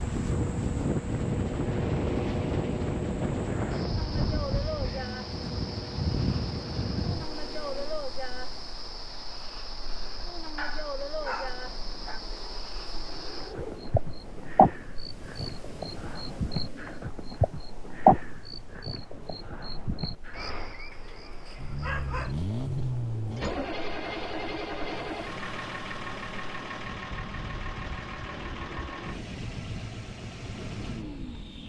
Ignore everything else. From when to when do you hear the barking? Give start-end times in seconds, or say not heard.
10.6-12.2, 20.9-22.4.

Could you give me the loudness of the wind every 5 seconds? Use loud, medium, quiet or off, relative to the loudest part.
loud, medium, quiet, quiet, quiet, quiet, quiet.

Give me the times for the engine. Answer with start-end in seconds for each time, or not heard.
0.0-8.1, 21.6-31.6.